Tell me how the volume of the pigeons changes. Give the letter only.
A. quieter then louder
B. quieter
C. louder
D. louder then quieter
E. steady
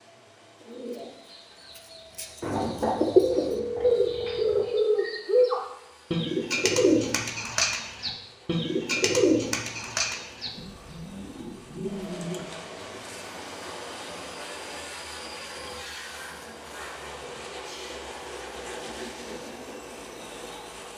B.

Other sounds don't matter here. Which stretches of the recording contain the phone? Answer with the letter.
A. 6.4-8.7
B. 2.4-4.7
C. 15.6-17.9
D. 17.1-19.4
B.